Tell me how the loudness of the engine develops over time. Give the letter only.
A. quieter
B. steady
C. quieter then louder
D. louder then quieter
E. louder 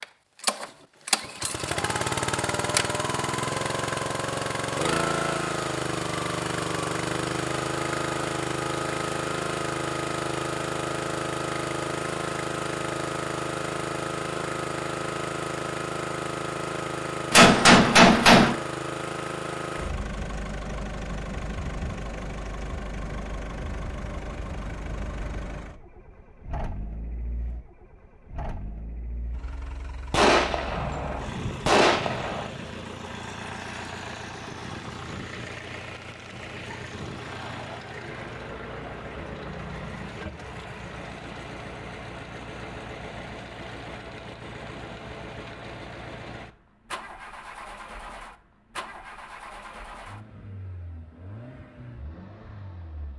A.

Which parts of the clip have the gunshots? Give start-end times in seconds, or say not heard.
17.3-18.6, 30.1-32.5.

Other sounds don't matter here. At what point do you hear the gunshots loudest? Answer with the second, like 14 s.
18 s.